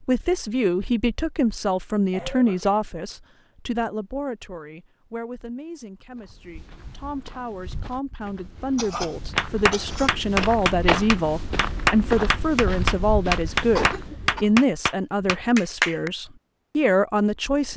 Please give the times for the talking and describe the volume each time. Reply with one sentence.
The talking can be heard from 0.0 to 17.7 s, getting quieter then louder.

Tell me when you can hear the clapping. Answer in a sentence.
The clapping can be heard from 9.3 to 16.1 s.